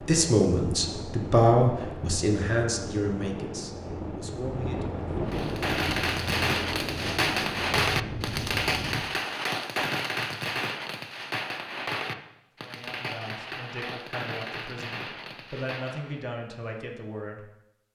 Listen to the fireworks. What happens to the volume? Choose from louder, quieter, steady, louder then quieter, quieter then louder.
quieter.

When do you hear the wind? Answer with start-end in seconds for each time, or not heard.
0.0-9.1.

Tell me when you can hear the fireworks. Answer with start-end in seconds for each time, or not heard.
5.2-16.2.